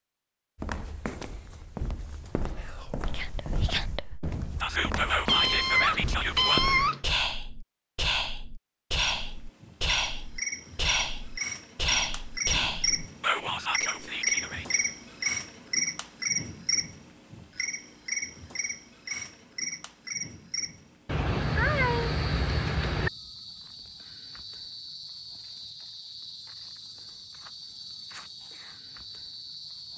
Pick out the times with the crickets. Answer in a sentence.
The crickets can be heard from 8.9 to 29.9 s.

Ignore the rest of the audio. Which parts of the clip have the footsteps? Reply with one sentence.
The footsteps can be heard from 0.6 to 6.9 s.